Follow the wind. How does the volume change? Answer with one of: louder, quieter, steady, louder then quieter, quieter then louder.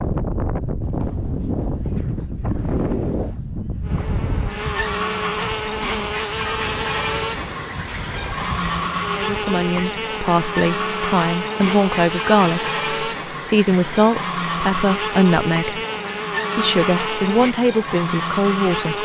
quieter.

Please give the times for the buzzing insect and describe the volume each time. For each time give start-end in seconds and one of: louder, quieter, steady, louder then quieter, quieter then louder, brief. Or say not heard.
3.8-19.0 steady.